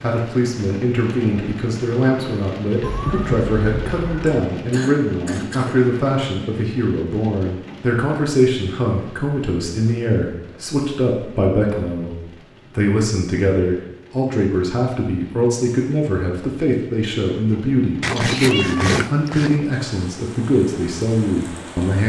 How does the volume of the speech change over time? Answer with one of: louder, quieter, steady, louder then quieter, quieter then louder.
steady.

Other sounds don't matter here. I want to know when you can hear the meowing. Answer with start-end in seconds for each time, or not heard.
2.8-4.4, 18.0-19.6.